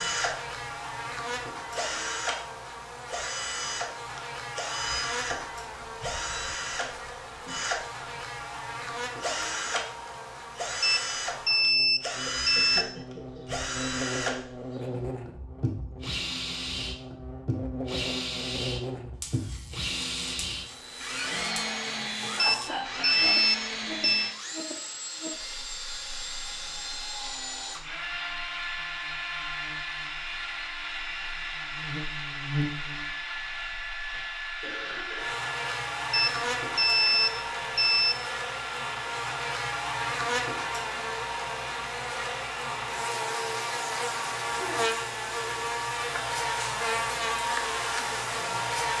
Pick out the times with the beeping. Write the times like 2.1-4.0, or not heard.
10.8-12.8, 22.4-24.3, 36.1-38.1.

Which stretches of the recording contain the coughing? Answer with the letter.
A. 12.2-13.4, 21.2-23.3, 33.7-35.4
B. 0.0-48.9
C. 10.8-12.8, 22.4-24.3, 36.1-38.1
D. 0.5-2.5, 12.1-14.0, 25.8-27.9
A.